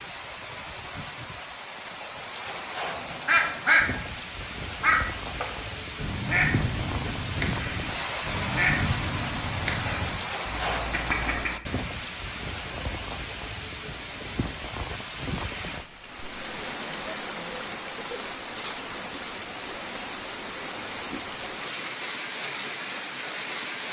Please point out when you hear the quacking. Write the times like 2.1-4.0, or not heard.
3.2-11.6.